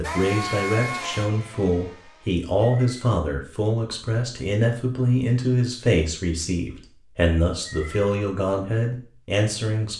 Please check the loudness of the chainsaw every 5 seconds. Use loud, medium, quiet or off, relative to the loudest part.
loud, off.